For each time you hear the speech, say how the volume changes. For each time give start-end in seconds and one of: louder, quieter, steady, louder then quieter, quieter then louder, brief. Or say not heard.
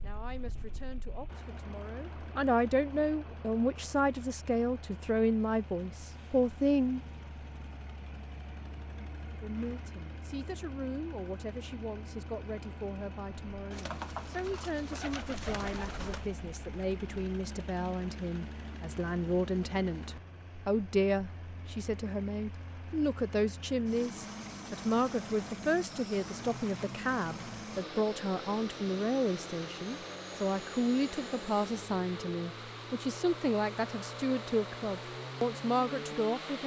0.0-7.0 louder
9.4-36.6 louder.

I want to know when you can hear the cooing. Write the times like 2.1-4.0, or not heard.
13.7-16.3.